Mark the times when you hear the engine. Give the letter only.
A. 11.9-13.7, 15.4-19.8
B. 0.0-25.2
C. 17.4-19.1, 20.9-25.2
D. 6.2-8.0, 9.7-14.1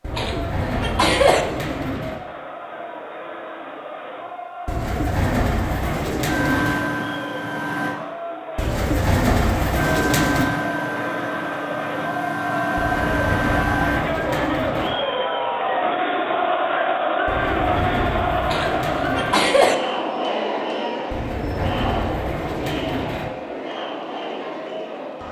D.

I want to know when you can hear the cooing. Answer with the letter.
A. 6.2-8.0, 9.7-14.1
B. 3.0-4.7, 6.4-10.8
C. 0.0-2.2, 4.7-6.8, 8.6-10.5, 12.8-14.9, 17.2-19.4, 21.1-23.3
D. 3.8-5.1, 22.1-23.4
C.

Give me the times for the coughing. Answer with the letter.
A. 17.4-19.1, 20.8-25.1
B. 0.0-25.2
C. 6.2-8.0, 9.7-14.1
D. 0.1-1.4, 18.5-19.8
D.